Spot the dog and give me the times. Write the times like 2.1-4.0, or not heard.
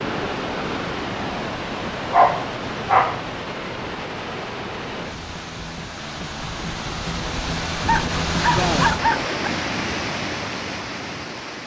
2.1-3.2, 7.8-9.5.